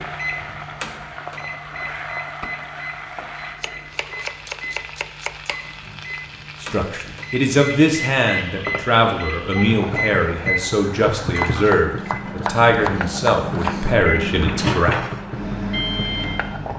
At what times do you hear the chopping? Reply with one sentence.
The chopping can be heard from 3.6 to 5.5 s and from 11.4 to 13.9 s.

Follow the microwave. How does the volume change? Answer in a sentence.
The loudness of the microwave goes up.